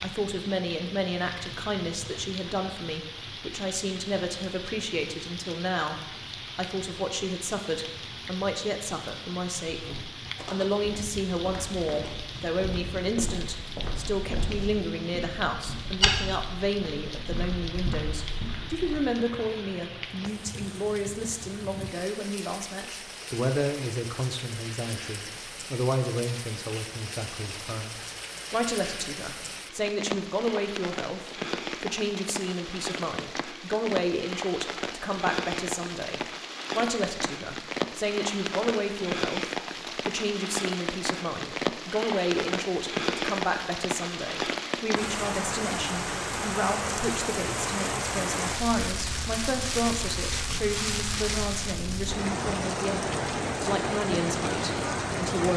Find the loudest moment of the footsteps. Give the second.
16 s.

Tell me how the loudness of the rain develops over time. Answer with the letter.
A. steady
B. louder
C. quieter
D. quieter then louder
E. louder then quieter
B.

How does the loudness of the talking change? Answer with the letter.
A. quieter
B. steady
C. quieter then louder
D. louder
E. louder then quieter
B.